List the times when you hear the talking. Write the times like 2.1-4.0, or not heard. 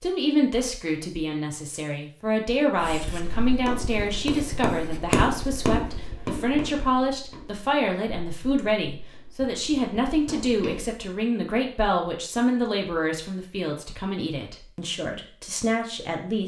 0.0-16.4.